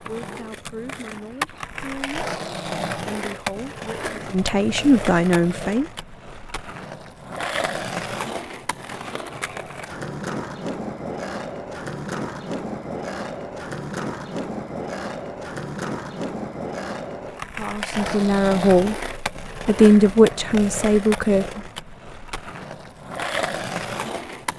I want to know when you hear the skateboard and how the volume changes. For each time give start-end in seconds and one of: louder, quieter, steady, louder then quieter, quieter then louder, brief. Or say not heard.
0.0-24.5 steady.